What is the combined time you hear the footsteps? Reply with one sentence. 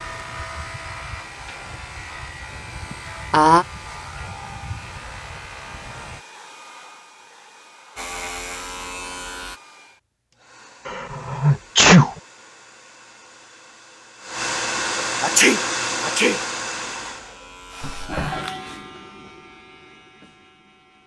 The footsteps can't be heard in this clip.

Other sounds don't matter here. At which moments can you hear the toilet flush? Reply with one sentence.
You can hear the toilet flush from 17.8 to 18.4 s.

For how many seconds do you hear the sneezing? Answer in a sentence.
You can hear the sneezing for 3 seconds altogether.